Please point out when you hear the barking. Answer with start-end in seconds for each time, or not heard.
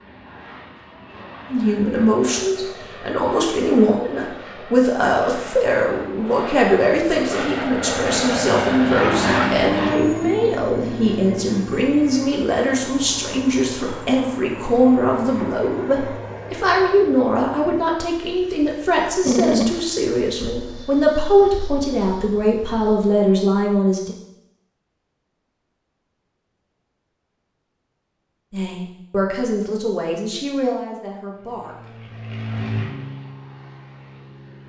9.0-9.6, 19.2-19.8.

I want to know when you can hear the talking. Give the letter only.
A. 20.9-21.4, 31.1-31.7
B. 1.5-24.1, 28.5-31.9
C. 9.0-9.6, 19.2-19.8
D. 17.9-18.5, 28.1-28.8
B.